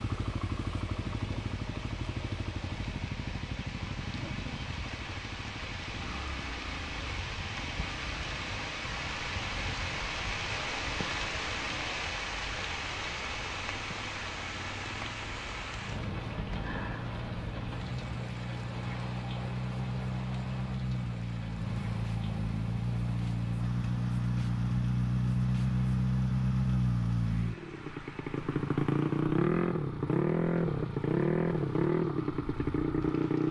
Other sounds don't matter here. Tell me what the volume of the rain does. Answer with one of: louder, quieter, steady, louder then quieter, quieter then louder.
louder then quieter.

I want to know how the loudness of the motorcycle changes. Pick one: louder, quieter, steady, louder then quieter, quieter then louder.
quieter then louder.